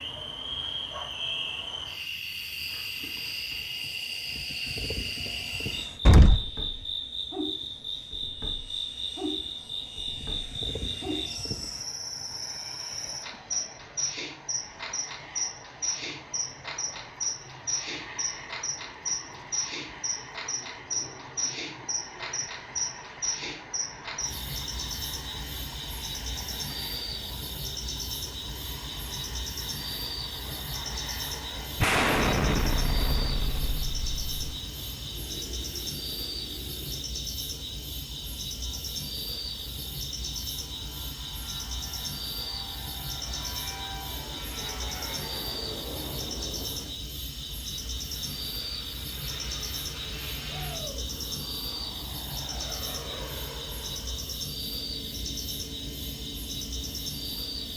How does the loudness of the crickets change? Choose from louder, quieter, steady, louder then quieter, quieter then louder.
steady.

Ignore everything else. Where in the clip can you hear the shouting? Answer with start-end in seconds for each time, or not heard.
50.5-51.0.